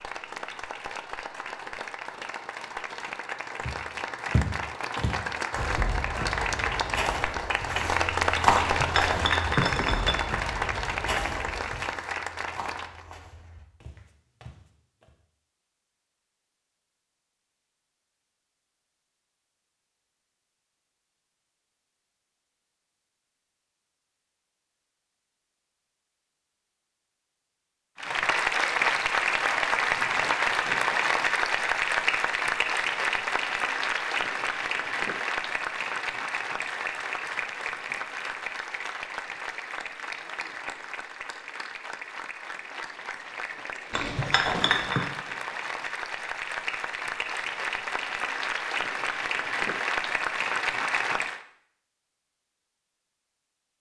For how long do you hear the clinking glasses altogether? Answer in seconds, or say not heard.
3 s.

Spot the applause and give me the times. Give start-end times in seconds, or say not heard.
0.0-13.1, 27.9-51.4.